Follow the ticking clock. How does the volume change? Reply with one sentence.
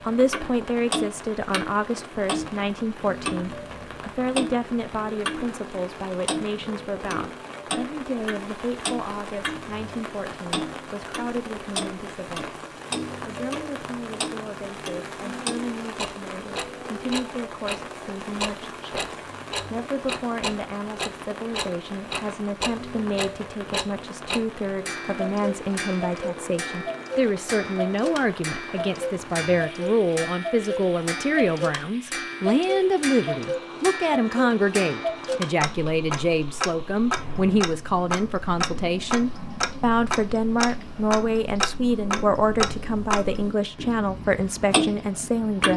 The volume of the ticking clock stays about the same.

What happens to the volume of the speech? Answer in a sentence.
The loudness of the speech goes down, then up.